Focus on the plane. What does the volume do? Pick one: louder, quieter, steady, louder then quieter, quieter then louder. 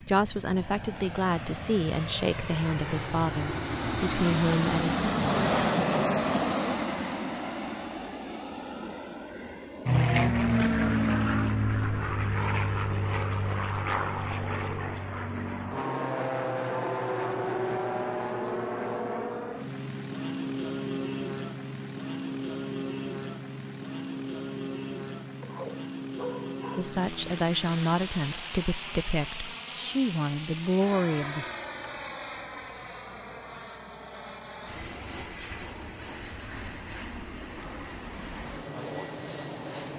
quieter.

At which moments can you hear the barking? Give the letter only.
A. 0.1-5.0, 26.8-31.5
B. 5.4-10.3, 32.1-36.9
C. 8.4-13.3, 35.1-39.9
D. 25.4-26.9
D.